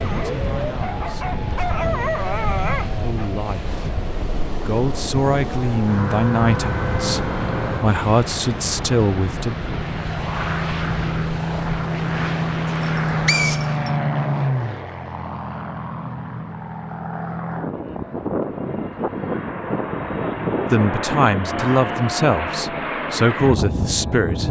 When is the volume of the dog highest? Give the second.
2 s.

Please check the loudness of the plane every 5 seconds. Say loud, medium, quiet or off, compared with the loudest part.
medium, medium, loud, medium, loud.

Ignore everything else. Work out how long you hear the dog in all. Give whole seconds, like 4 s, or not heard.
3 s.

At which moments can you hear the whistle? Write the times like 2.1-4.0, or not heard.
12.8-13.9.